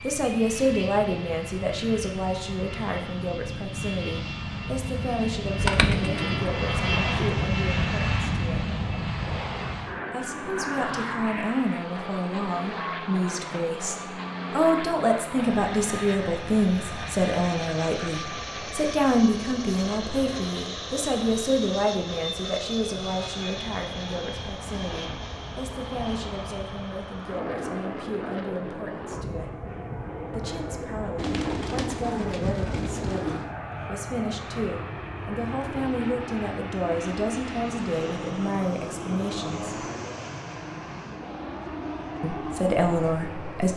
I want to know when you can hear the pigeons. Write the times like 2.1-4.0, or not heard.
5.5-7.3, 31.1-33.5.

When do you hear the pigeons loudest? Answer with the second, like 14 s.
6 s.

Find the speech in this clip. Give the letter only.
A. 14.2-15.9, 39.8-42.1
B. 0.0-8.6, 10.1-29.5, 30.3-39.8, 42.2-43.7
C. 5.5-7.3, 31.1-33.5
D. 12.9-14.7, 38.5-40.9
B.